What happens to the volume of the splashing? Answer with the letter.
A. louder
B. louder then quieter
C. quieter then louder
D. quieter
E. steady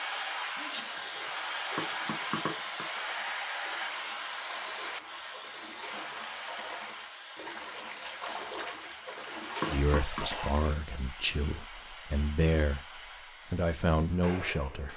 A.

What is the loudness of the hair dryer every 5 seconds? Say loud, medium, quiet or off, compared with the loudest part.
loud, medium, medium.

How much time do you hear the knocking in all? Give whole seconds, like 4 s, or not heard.
2 s.